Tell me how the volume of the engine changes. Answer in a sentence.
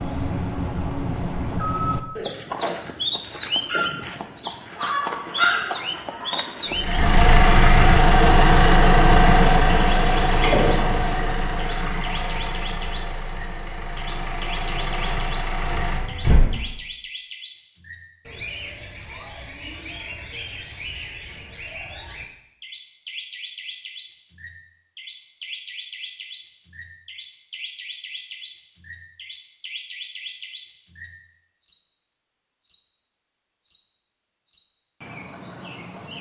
The loudness of the engine goes down, then up.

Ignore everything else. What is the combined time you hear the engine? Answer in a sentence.
The engine can be heard for 10 seconds in total.